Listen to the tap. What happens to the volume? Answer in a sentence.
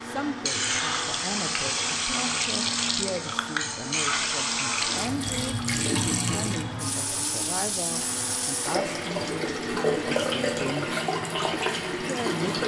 The volume of the tap stays about the same.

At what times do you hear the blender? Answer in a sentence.
You can hear the blender from 0.0 to 12.6 s.